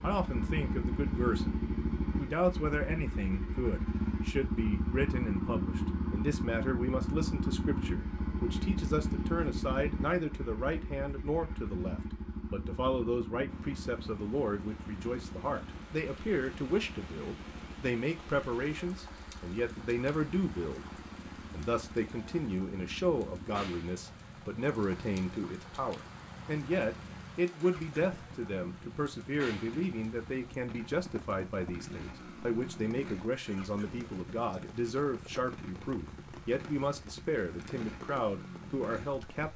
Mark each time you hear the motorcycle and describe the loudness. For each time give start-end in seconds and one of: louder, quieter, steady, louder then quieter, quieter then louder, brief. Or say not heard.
0.0-39.5 quieter.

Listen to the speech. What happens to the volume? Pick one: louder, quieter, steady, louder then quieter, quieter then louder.
steady.